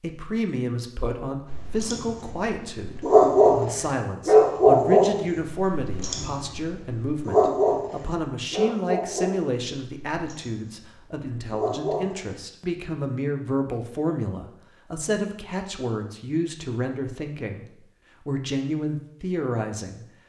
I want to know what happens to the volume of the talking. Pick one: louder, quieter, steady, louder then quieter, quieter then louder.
steady.